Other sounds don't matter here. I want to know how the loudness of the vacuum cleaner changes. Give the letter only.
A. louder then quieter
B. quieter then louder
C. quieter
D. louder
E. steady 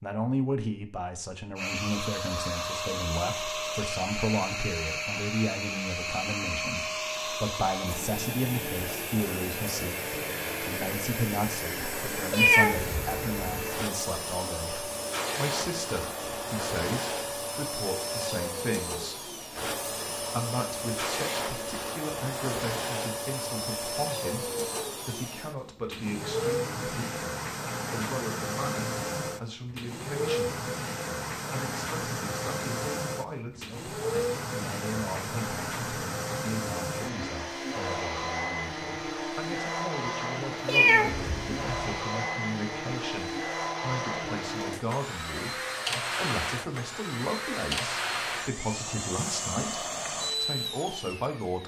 E.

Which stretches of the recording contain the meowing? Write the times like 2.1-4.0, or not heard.
12.3-13.4, 40.6-42.0.